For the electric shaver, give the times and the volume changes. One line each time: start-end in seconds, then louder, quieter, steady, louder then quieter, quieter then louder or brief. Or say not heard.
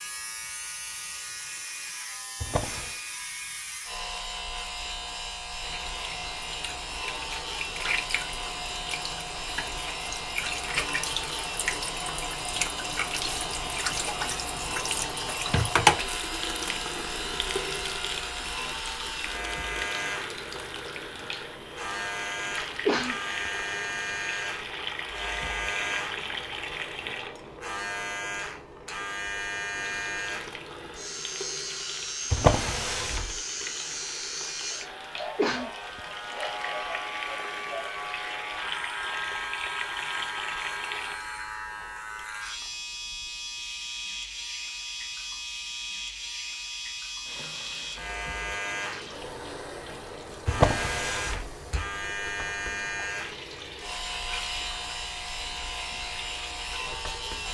0.0-57.4 steady.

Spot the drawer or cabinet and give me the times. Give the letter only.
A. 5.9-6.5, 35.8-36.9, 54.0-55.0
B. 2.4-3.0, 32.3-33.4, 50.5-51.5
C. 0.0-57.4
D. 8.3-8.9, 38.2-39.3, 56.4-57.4
B.